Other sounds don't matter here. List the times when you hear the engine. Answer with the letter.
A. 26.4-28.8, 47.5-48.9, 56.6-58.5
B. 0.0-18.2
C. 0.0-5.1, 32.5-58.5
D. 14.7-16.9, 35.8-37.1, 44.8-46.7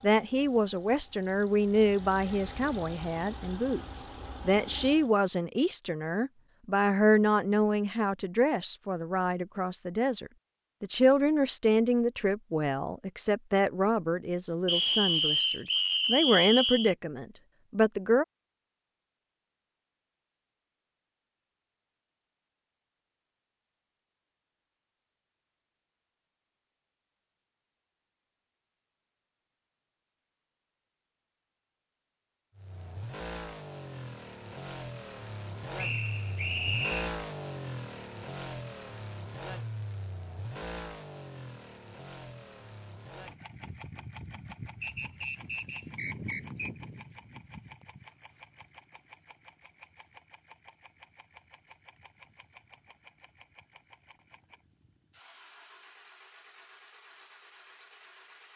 C.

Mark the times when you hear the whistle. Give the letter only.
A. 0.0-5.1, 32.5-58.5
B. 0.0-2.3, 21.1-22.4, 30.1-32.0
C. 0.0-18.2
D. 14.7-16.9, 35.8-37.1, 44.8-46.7
D.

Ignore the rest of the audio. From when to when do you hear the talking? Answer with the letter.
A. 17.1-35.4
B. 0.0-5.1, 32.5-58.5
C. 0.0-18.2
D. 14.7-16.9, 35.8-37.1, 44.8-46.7
C.